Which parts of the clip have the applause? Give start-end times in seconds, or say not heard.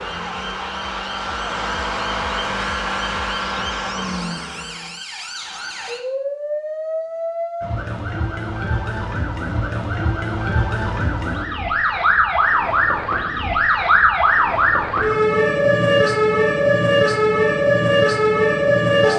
not heard.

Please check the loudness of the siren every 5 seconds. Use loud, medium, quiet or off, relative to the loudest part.
quiet, medium, loud, loud.